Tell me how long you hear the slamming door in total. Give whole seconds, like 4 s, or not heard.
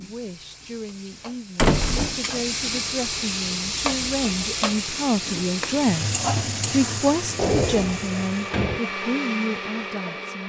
2 s.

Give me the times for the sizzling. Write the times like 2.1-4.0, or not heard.
0.0-8.7.